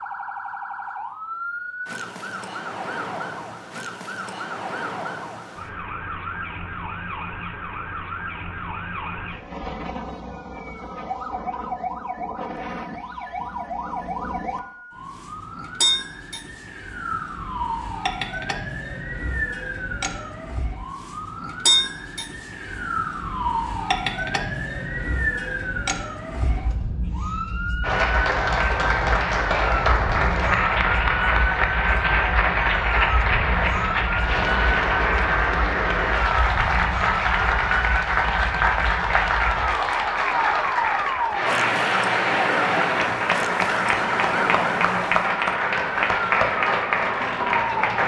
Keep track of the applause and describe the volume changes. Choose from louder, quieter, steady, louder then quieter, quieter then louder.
steady.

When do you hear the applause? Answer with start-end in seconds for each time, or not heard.
27.8-48.0.